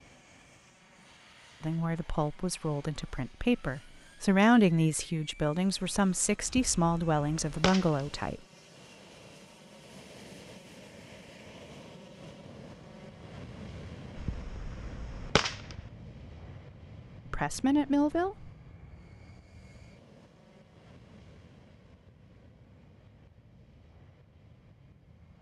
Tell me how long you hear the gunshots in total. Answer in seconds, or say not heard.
3 s.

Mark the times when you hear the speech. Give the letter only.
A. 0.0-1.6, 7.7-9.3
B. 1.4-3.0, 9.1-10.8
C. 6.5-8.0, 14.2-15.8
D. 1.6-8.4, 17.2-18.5
D.